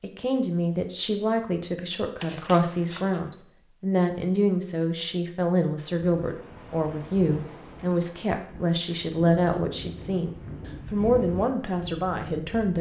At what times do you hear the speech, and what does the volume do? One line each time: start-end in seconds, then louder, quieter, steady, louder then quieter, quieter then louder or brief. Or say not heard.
0.0-12.7 steady.